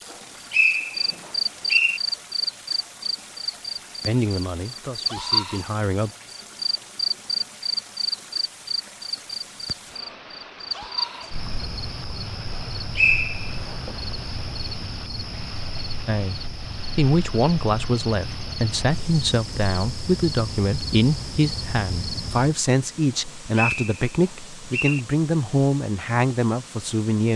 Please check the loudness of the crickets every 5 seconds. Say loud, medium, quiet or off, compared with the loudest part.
loud, loud, medium, medium, medium, off.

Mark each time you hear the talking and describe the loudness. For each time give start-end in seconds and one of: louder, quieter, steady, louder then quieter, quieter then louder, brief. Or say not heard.
4.0-6.1 brief
16.1-27.3 steady.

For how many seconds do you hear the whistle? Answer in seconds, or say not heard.
4 s.